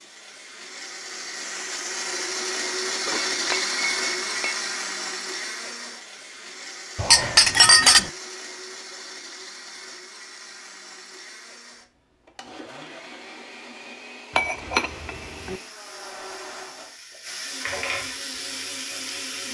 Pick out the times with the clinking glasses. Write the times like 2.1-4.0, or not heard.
3.0-4.5, 7.0-8.1, 14.3-15.6.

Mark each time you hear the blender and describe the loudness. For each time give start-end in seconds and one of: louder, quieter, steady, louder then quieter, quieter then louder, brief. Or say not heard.
0.0-19.4 quieter.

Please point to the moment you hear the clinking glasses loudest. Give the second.
8 s.